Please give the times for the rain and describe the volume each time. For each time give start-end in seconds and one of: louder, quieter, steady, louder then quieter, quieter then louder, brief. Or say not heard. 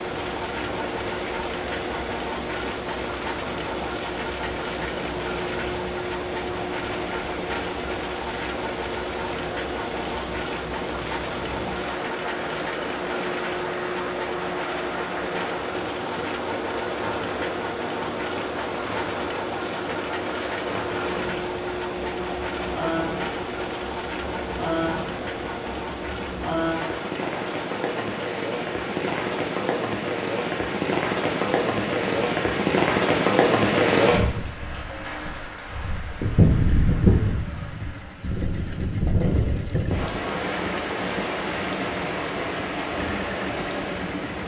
0.0-44.4 louder.